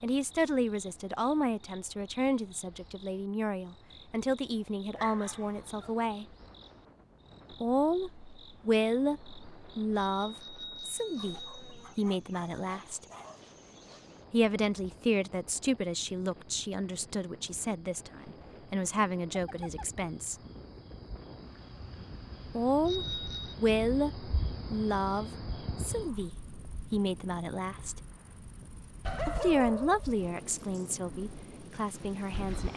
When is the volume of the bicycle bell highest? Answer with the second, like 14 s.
23 s.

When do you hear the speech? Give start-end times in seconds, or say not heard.
0.0-6.2, 7.6-13.1, 14.3-20.4, 22.6-28.0, 29.2-32.7.